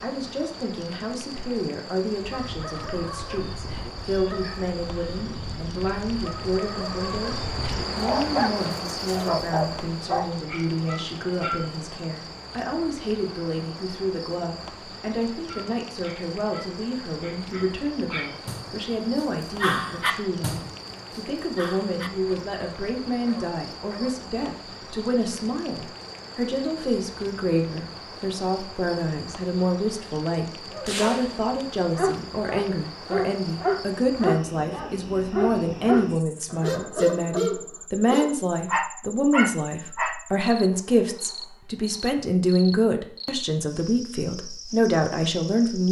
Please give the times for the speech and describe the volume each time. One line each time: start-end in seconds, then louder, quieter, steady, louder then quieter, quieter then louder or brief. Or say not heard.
0.0-45.8 louder.